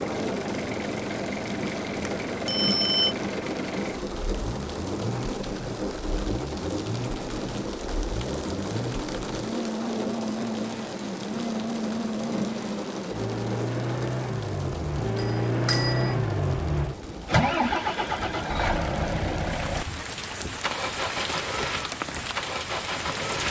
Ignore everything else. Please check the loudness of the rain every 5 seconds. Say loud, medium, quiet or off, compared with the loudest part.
loud, loud, loud, medium, loud.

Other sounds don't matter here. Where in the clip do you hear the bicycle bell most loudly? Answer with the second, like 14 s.
3 s.